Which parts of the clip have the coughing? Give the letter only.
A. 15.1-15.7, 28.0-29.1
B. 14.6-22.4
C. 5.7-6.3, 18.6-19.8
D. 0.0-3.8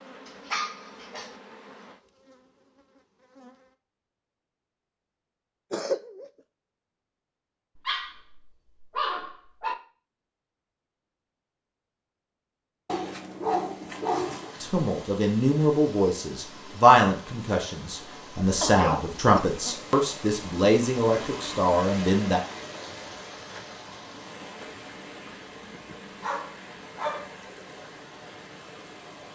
C.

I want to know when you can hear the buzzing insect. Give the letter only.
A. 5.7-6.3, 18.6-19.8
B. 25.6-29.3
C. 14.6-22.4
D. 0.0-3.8
D.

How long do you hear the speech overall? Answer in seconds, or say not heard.
8 s.